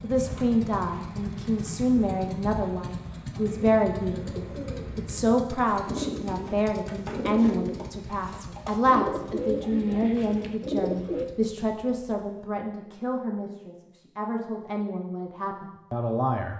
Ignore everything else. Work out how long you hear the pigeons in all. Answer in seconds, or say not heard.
11 s.